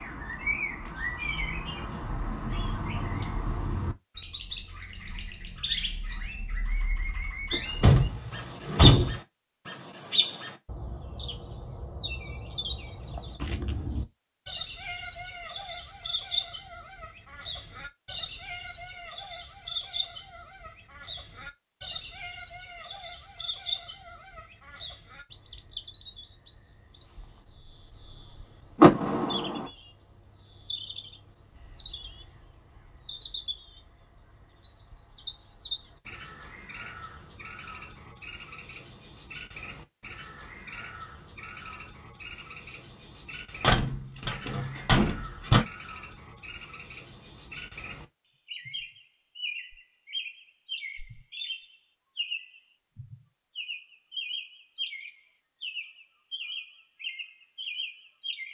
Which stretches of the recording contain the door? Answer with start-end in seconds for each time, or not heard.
7.5-9.2, 28.8-29.6, 43.6-45.6.